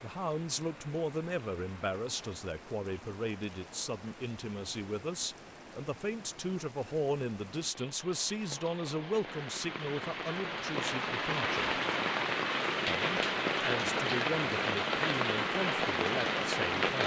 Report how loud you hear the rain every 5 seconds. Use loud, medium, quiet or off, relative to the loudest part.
quiet, quiet, loud, loud.